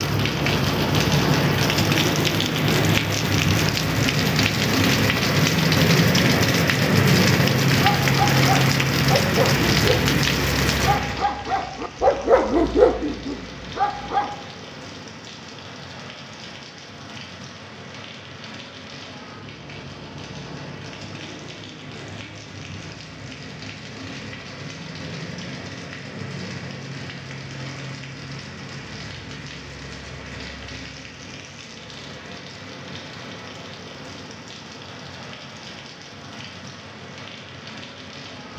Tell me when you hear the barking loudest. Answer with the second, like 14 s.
13 s.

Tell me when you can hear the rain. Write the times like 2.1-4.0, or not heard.
0.0-38.5.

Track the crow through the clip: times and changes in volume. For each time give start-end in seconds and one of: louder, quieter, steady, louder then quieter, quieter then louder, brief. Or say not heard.
not heard.